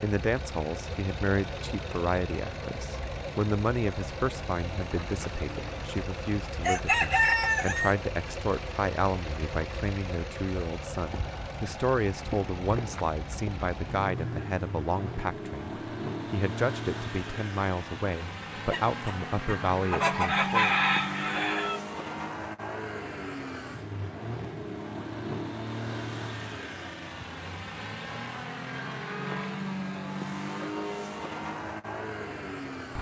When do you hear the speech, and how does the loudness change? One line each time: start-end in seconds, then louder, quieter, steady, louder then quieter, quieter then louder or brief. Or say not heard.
0.0-20.8 steady.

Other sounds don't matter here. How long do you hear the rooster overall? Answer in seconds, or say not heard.
6 s.